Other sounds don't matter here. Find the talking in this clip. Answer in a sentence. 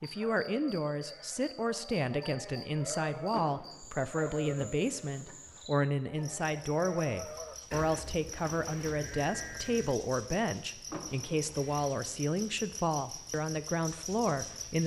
The talking can be heard from 0.0 to 14.8 s.